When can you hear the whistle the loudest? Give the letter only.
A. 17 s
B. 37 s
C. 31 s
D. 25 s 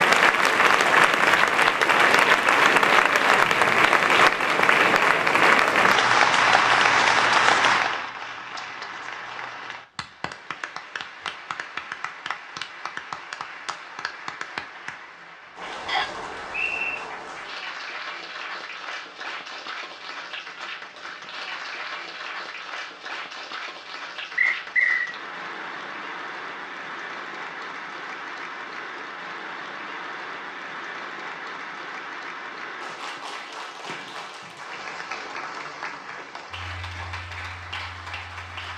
D.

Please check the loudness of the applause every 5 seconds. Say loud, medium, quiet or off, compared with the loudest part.
loud, loud, quiet, quiet, quiet, quiet, quiet, quiet.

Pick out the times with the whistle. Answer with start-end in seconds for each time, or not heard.
15.8-17.1, 24.4-25.1.